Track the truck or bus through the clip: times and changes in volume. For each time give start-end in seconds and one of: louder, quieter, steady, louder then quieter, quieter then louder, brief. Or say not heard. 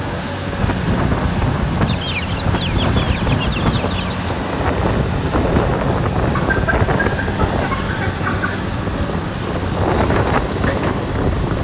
0.0-11.5 steady.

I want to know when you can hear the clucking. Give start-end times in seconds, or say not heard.
1.9-4.2, 6.3-8.6.